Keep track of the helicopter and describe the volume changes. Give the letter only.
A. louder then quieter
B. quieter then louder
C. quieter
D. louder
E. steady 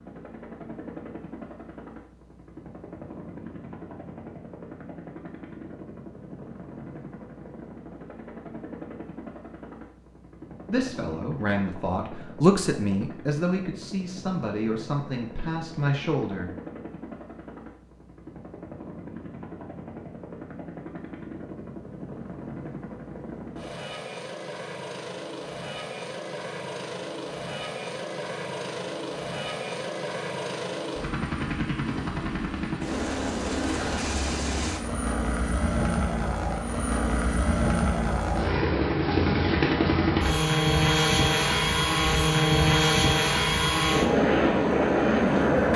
D.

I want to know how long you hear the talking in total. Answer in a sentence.
The talking can be heard for 6 seconds in total.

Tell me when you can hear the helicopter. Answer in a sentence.
You can hear the helicopter from 0.0 to 45.7 s.